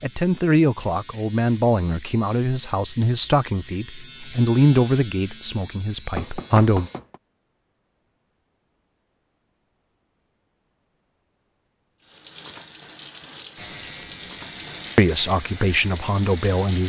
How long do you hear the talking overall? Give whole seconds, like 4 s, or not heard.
9 s.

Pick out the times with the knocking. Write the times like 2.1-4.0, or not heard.
6.2-7.2.